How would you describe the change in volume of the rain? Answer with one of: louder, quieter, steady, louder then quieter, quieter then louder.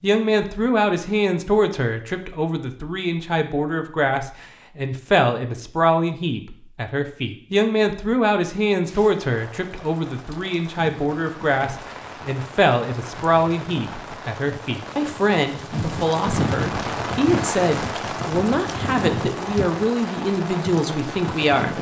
louder.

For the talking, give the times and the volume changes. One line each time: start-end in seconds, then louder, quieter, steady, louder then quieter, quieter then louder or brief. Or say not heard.
0.0-21.7 steady.